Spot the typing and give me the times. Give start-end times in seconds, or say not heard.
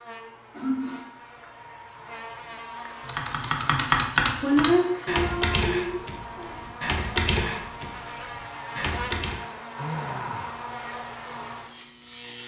3.0-9.4.